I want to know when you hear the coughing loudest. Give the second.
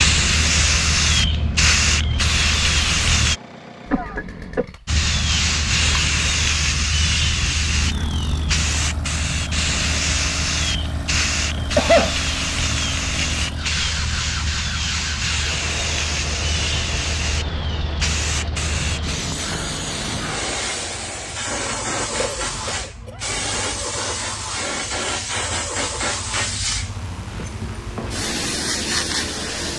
12 s.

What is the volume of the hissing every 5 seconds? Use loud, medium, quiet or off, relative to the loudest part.
loud, loud, medium, medium, medium, medium.